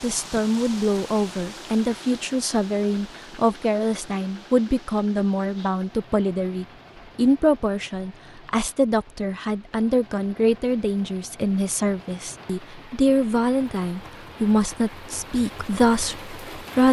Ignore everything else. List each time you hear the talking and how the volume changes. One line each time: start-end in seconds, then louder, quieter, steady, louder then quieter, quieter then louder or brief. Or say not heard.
0.0-16.8 steady.